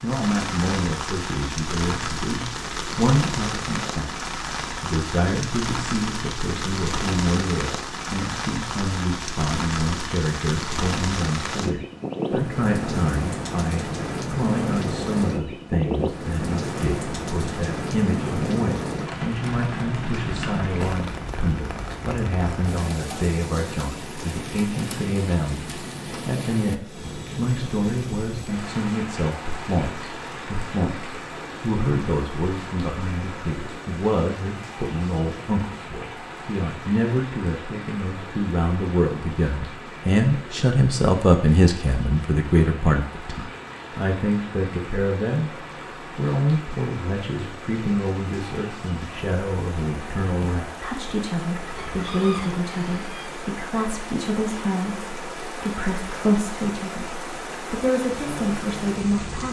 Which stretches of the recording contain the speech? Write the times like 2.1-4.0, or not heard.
0.0-59.4.